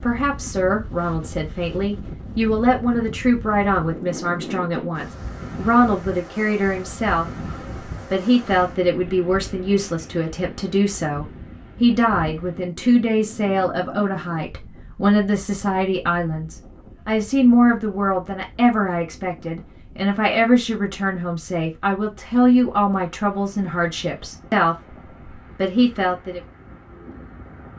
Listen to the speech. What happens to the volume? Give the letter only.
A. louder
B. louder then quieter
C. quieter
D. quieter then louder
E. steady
E.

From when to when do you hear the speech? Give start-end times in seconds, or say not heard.
0.0-26.4.